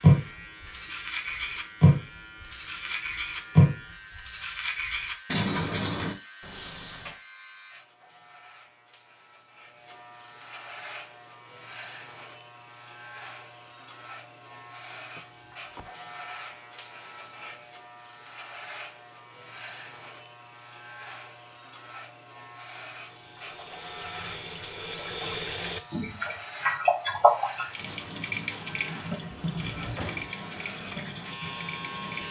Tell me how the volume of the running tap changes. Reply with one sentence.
The loudness of the running tap goes up, then down.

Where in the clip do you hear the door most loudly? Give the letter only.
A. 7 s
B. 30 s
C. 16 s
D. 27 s
B.